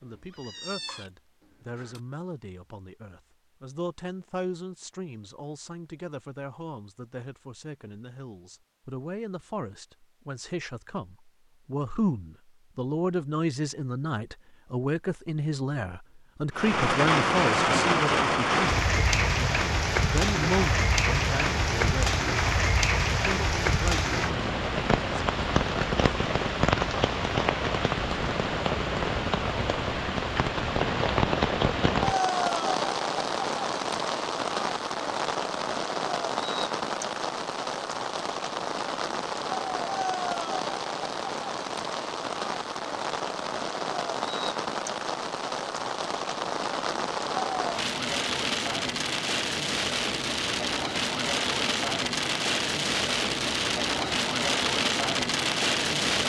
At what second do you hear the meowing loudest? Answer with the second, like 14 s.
1 s.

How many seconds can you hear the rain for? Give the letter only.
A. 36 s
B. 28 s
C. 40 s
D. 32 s
C.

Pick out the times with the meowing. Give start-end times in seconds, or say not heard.
0.0-2.0.